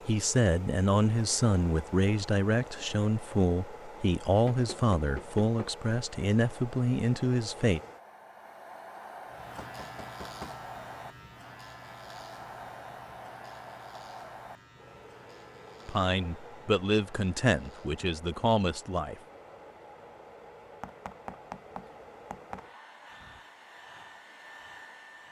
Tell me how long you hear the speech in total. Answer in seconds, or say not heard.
11 s.